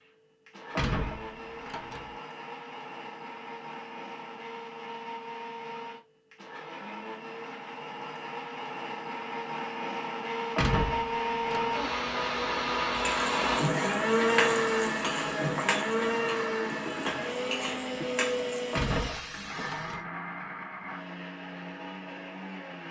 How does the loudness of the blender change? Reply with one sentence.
The loudness of the blender goes up, then down.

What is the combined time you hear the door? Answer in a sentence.
You can hear the door for 4 seconds altogether.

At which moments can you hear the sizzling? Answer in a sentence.
The sizzling can be heard from 12.9 to 20.0 s.